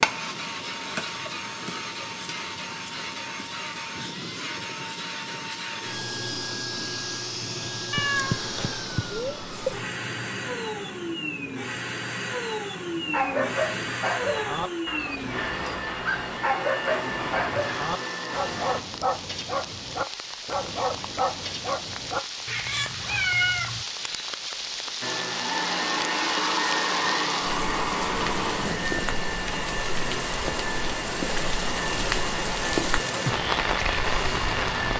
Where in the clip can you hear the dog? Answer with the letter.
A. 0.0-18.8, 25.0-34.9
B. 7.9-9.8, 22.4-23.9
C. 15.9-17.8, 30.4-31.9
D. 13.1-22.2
D.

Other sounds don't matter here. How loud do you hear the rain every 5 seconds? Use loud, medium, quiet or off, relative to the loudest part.
quiet, quiet, quiet, medium, medium, loud, loud.